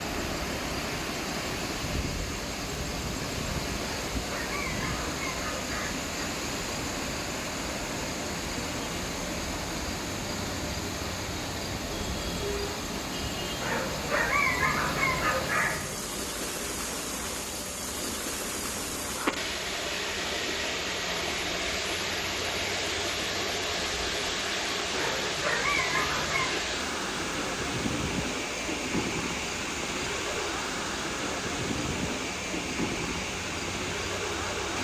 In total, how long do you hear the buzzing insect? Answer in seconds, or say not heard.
35 s.